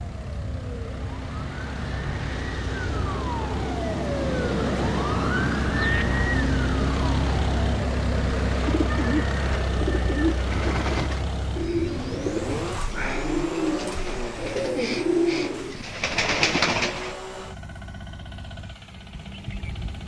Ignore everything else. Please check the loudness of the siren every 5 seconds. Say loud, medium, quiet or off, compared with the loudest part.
loud, loud, medium, off.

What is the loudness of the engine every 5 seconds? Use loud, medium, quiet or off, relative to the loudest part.
medium, loud, loud, medium.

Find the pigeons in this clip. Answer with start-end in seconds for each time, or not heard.
8.8-17.1.